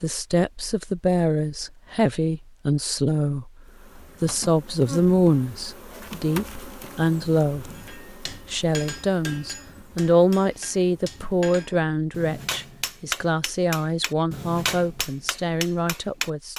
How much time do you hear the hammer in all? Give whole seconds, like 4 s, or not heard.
9 s.